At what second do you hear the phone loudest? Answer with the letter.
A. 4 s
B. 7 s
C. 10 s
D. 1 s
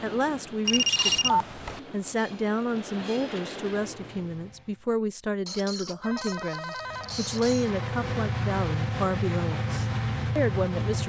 D.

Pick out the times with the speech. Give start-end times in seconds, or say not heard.
0.0-11.0.